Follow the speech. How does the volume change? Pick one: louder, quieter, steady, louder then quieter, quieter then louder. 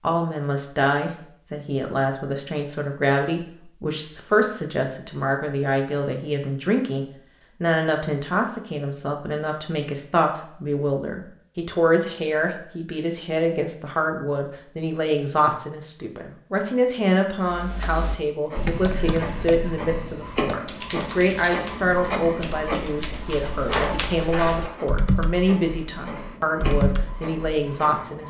steady.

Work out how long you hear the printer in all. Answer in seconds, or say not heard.
10 s.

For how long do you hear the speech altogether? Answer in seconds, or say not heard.
28 s.